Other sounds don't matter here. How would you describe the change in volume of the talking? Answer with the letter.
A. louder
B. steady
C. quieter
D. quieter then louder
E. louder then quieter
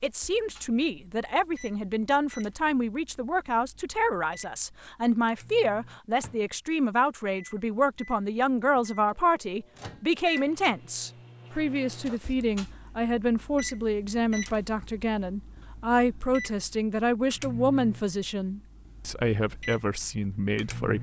B.